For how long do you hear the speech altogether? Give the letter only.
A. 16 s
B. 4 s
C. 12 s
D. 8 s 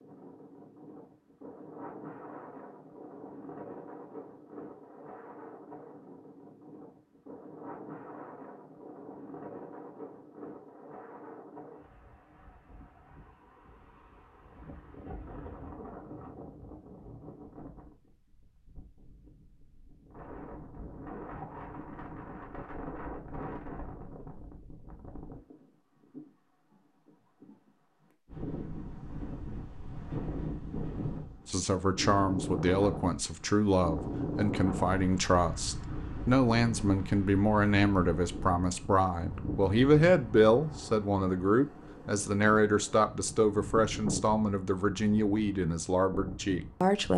A.